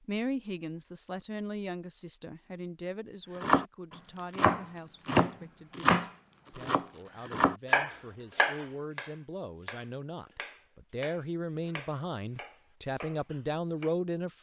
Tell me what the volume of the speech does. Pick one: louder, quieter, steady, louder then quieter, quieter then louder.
quieter then louder.